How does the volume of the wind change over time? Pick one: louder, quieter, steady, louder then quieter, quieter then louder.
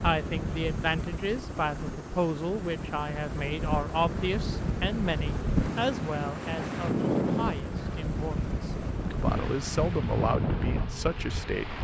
louder.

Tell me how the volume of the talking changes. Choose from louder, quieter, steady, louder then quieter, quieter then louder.
quieter then louder.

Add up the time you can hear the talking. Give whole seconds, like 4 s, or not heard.
12 s.